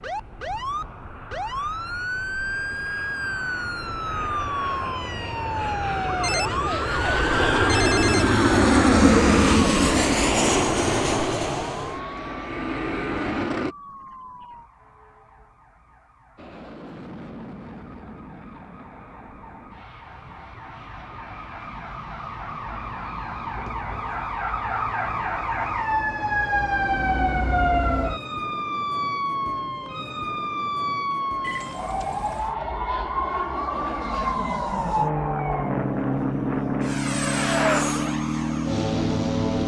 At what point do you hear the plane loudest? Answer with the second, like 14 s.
9 s.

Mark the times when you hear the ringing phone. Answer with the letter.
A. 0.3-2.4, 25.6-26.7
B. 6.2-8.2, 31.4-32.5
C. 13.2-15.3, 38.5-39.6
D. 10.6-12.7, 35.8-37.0
B.